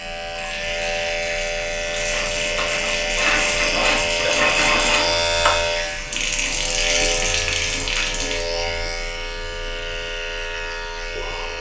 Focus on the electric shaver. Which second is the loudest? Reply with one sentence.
The loudest moment of the electric shaver is at 5 seconds.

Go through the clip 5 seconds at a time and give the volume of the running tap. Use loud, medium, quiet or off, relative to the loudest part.
loud, loud, off.